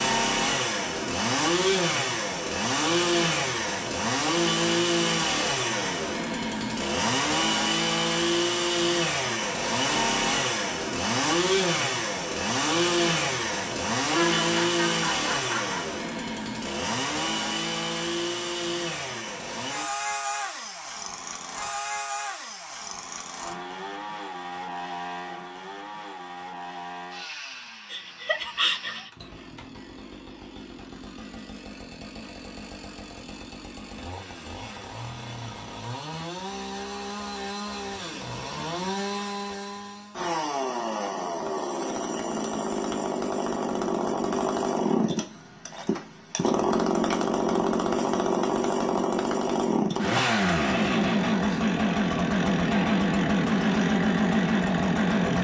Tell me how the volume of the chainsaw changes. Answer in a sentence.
The loudness of the chainsaw goes down, then up.